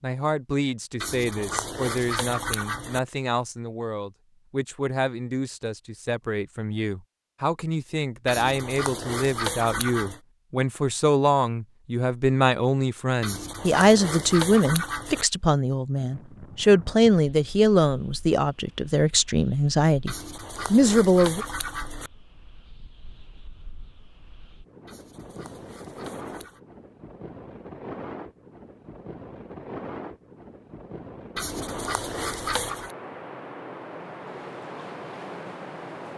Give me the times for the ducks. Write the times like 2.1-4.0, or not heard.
1.0-3.0, 8.2-10.2, 13.2-15.2, 20.1-22.1, 24.9-26.6, 31.4-33.0.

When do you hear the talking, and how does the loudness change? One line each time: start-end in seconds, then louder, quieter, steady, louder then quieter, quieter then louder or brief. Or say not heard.
0.0-21.4 louder.